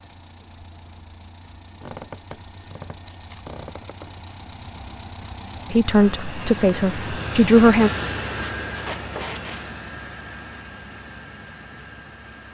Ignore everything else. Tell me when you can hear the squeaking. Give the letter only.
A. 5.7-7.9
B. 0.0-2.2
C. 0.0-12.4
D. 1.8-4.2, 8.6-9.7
D.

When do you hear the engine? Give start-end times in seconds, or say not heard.
0.0-12.4.